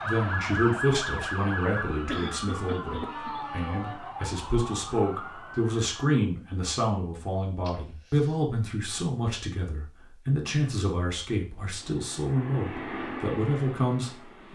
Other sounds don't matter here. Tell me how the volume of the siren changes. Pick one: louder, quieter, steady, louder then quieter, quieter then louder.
quieter.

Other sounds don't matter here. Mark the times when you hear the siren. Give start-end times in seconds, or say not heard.
0.0-6.0.